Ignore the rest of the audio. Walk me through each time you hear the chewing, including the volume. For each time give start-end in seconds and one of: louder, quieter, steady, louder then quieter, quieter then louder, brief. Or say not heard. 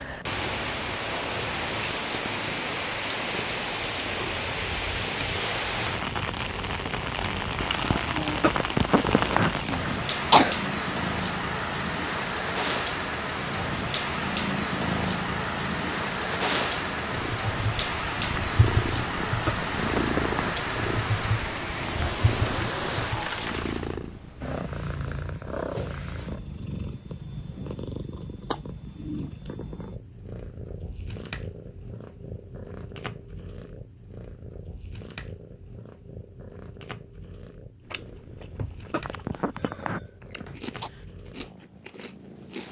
37.8-42.6 quieter then louder.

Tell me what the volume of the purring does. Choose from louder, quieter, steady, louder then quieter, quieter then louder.
louder then quieter.